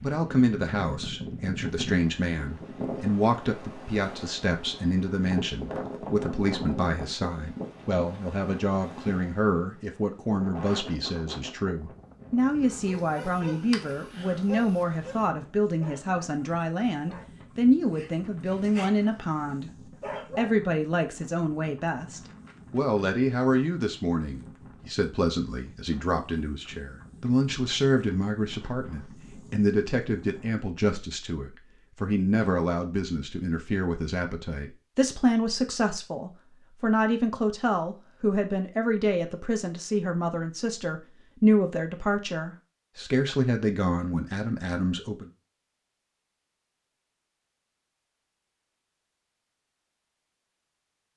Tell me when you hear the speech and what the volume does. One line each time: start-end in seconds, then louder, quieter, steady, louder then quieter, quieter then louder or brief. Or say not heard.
0.0-45.3 steady.